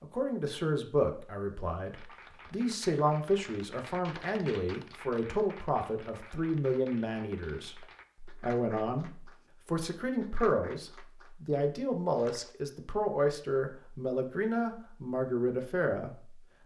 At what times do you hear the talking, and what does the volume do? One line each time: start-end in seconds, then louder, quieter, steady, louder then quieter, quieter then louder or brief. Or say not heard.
0.0-16.4 steady.